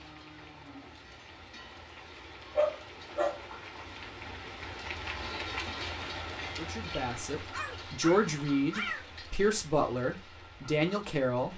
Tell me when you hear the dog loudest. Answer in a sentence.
The volume of the dog peaks at 3 seconds.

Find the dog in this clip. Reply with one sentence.
You can hear the dog from 2.5 to 3.4 s and from 7.5 to 9.1 s.